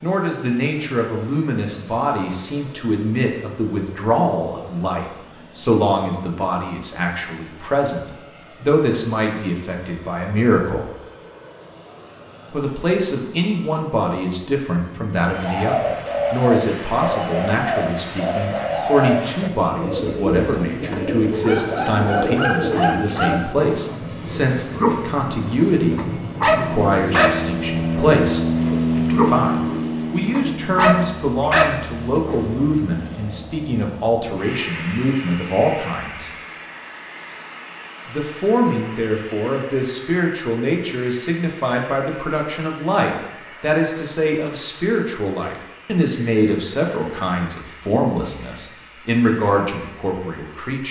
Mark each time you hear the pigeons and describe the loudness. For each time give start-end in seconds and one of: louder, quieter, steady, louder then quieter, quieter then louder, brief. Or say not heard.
15.3-23.4 steady.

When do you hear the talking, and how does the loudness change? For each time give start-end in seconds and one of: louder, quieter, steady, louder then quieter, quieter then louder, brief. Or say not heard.
0.0-10.9 steady
12.5-36.3 steady
38.0-50.8 steady.